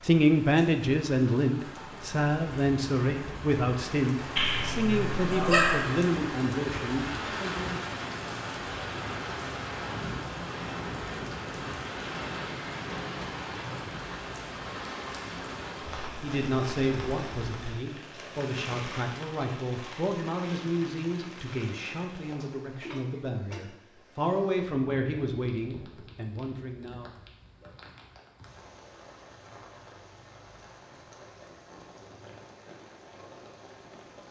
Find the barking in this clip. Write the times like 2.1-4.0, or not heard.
4.3-5.9.